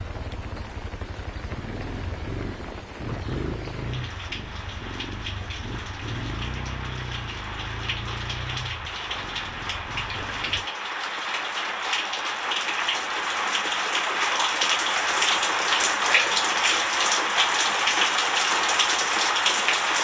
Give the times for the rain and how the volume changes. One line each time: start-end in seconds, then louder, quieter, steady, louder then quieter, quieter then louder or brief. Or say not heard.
0.0-19.9 louder.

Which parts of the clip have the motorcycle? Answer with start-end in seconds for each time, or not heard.
0.0-10.7.